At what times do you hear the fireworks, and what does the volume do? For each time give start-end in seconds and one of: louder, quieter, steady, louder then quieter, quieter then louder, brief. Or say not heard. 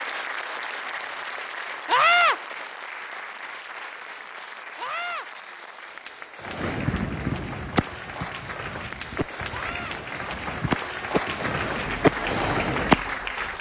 6.5-13.0 quieter then louder.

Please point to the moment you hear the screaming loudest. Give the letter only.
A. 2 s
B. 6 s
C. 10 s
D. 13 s
A.